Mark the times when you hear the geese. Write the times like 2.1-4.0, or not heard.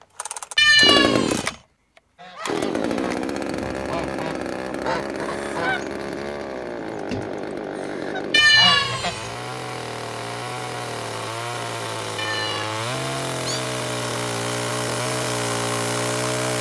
2.2-9.2.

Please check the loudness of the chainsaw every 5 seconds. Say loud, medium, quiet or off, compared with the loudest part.
loud, medium, loud, loud.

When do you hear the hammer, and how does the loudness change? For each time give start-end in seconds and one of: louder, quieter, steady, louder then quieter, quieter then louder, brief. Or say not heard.
not heard.